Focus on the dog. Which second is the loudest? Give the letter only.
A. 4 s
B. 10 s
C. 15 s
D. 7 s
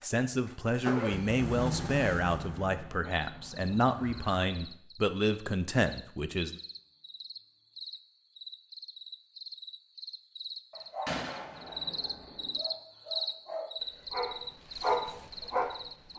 C.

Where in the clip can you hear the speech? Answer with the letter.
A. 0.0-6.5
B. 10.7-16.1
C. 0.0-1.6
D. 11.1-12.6
A.